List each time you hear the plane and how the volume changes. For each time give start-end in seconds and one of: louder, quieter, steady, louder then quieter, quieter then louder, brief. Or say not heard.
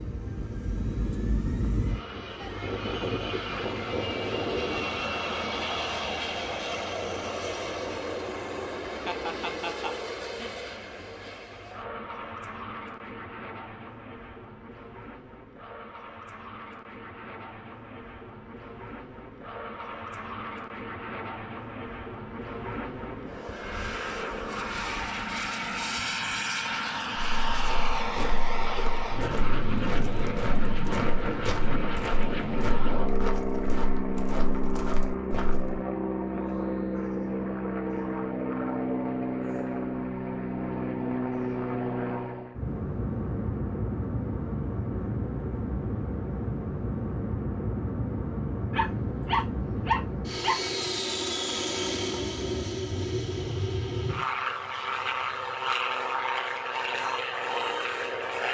0.0-58.4 quieter then louder.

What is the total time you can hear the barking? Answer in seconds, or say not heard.
2 s.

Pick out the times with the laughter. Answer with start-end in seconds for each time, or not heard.
9.1-10.6.